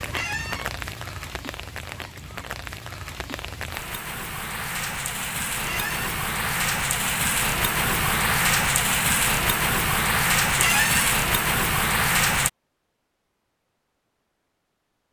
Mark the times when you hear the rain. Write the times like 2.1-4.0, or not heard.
0.0-12.5.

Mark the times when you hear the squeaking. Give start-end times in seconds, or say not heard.
0.1-0.7, 5.6-6.1, 10.6-11.1.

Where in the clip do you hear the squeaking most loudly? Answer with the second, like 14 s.
11 s.